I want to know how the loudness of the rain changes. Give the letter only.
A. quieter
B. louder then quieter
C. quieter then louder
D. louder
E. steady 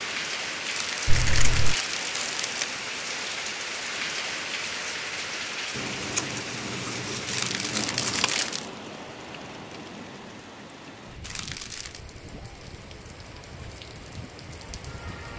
A.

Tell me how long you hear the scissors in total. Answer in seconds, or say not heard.
5 s.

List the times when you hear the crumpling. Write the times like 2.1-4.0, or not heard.
0.7-2.6, 7.2-8.7, 11.2-12.0.